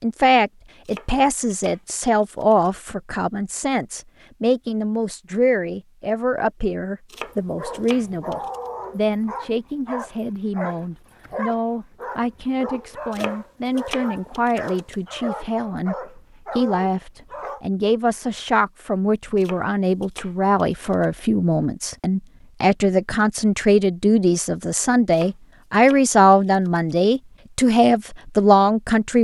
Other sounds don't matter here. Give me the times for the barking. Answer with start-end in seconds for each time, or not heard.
7.2-17.6.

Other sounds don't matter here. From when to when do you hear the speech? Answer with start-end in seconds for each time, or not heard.
0.0-29.2.